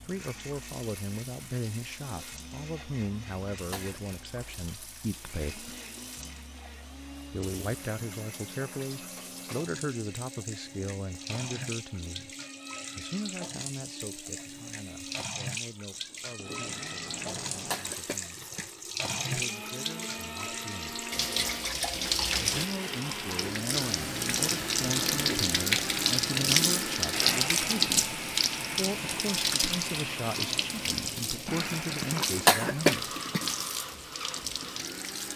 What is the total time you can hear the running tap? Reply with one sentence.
The running tap can be heard for 35 seconds in total.